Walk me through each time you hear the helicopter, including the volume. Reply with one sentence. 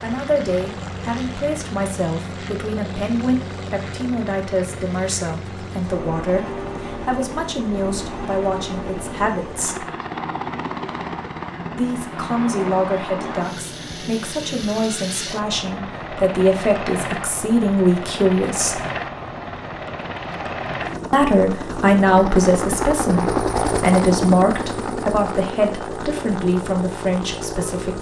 The helicopter can be heard from 0.0 to 27.9 s, getting louder.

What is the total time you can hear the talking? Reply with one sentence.
The talking can be heard for 24 seconds in total.